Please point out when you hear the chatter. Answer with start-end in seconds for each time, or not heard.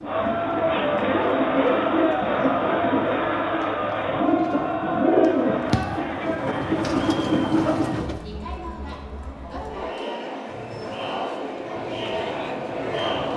0.0-13.3.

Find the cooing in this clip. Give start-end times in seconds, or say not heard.
0.0-8.2.